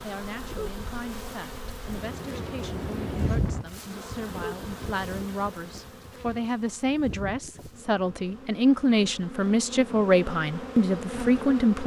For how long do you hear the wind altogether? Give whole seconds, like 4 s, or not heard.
8 s.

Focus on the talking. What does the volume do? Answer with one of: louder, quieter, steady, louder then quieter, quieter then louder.
louder.